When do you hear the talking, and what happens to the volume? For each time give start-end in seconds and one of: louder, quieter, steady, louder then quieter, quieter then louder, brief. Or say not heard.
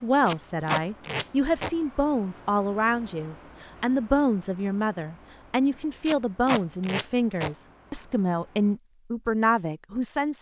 0.0-10.3 steady.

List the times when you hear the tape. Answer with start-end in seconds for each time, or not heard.
0.2-1.8, 6.0-7.5.